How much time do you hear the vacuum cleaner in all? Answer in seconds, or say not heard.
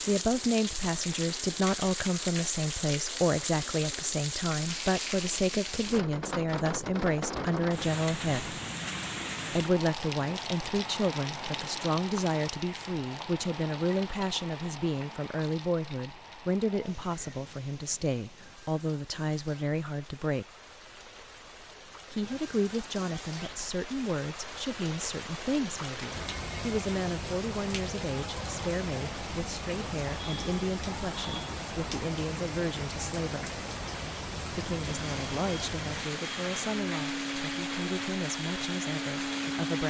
5 s.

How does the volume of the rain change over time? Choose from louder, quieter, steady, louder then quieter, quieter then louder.
quieter then louder.